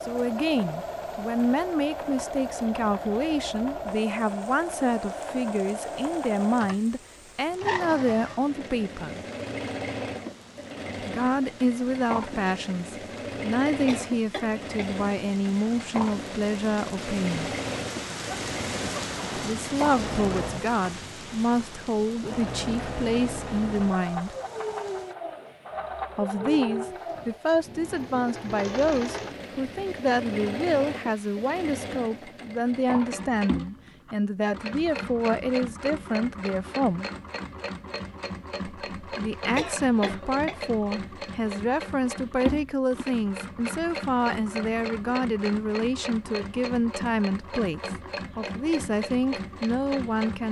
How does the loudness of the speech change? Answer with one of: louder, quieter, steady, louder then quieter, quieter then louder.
steady.